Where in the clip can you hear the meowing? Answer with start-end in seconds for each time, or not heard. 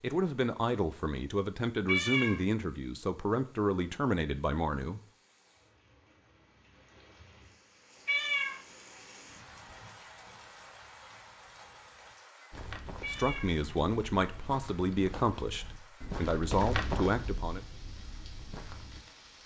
1.9-2.4, 8.1-8.6, 13.0-13.6.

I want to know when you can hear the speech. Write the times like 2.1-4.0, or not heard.
0.0-5.0, 13.1-17.6.